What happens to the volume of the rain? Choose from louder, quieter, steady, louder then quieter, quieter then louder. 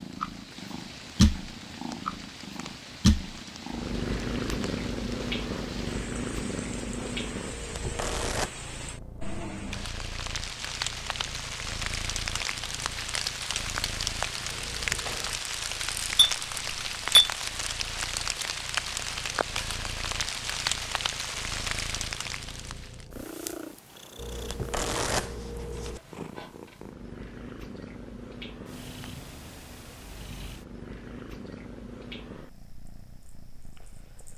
louder.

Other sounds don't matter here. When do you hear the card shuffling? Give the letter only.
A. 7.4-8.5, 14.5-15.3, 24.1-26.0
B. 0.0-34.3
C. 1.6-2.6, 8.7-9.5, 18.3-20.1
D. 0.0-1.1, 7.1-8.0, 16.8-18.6
A.